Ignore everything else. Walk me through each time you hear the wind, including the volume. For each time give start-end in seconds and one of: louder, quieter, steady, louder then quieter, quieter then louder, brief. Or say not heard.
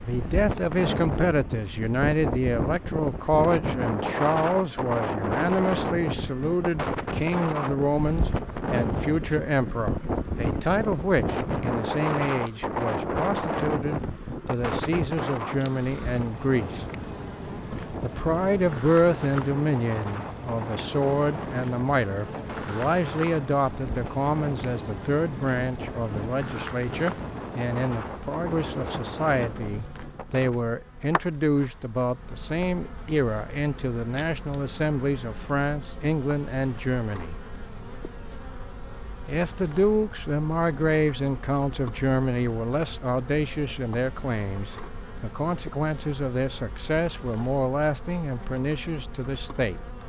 0.0-30.6 quieter.